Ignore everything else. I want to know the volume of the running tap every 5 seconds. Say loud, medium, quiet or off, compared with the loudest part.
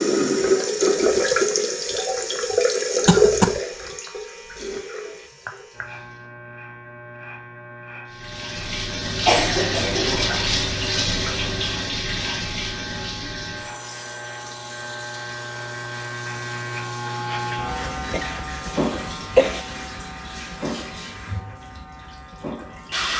loud, medium, medium, quiet, quiet.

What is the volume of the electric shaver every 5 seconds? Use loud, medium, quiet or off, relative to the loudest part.
quiet, medium, medium, loud, medium.